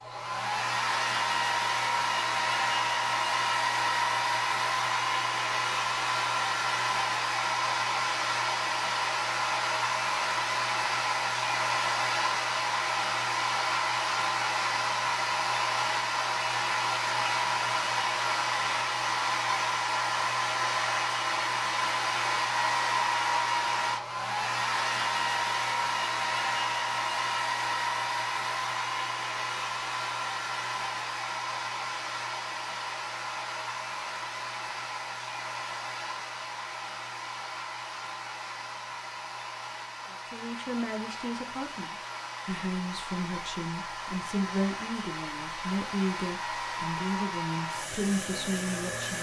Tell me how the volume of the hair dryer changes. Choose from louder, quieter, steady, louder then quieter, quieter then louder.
quieter.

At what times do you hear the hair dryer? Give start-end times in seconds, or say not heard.
0.0-49.1.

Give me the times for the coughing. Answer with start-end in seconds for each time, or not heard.
not heard.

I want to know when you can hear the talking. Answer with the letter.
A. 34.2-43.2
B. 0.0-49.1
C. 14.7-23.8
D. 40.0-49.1
D.